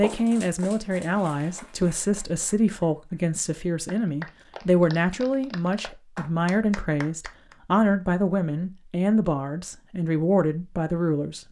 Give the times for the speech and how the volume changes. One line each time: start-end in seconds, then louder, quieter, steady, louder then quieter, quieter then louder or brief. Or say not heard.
0.0-11.4 steady.